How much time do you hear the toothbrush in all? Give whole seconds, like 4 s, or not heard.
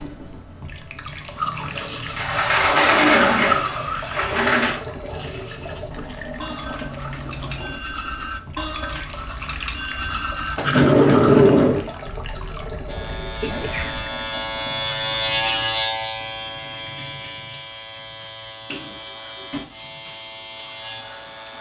10 s.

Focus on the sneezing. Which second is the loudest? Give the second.
14 s.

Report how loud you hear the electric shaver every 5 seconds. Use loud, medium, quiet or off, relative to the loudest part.
off, off, loud, loud, medium.